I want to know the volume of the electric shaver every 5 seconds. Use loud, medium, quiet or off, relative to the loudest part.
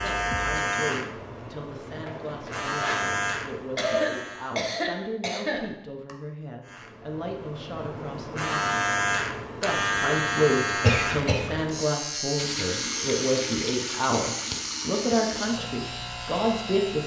loud, loud, loud, medium.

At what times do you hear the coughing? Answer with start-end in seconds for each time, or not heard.
3.8-6.2, 10.8-11.7.